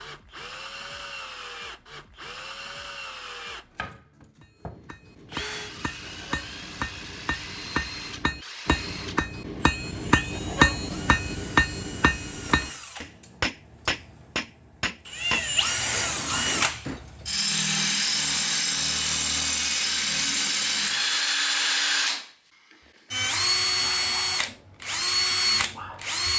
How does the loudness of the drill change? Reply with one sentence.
The volume of the drill goes up.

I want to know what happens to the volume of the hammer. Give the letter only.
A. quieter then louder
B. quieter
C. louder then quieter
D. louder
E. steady
C.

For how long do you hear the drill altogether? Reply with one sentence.
You can hear the drill for 26 seconds altogether.